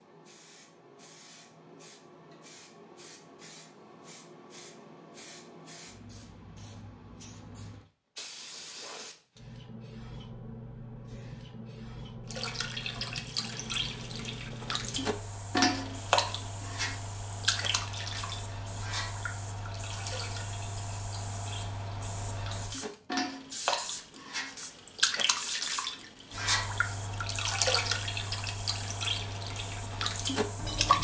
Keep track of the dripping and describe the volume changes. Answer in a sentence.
The loudness of the dripping goes down, then up.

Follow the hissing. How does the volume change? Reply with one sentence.
The volume of the hissing goes up.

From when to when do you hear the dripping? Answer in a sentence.
You can hear the dripping from 12.3 to 30.9 s.